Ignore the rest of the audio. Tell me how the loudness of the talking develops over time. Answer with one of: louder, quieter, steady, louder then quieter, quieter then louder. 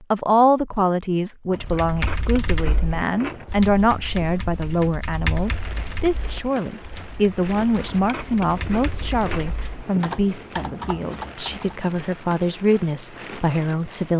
steady.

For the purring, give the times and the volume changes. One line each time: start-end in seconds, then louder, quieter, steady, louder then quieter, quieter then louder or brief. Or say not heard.
not heard.